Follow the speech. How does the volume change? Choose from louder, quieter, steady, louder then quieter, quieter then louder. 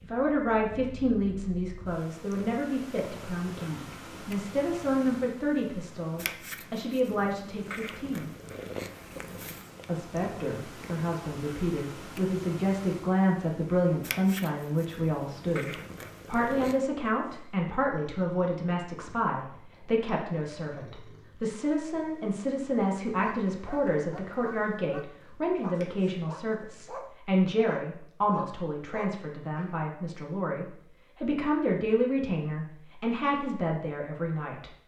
steady.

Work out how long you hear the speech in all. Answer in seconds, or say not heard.
33 s.